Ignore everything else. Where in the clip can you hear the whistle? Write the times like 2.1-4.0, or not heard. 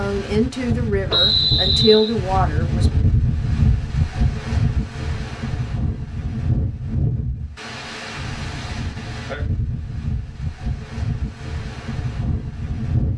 1.1-2.1.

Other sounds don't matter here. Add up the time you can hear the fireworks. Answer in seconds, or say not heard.
not heard.